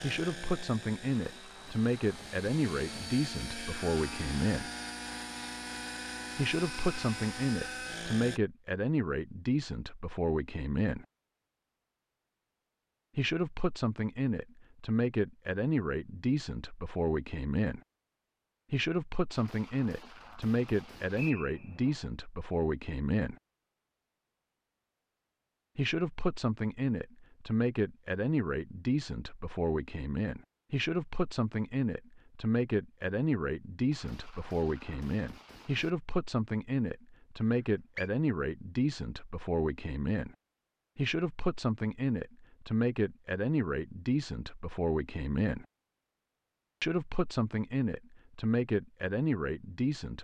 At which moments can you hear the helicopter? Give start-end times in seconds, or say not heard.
0.0-8.4.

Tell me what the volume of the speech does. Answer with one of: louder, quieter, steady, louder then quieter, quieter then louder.
steady.